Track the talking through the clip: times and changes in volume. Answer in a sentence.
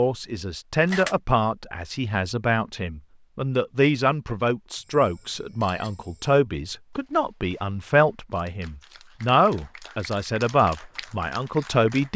You can hear the talking from 0.0 to 12.1 s, at a steady volume.